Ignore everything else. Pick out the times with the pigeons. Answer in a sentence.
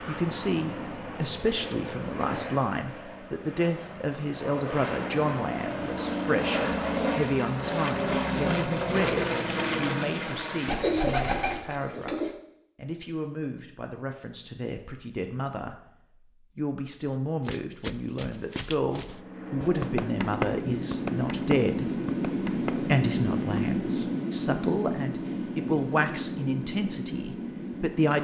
The pigeons can be heard from 10.7 to 12.3 s.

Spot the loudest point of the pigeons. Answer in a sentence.
The loudest moment of the pigeons is at 11 seconds.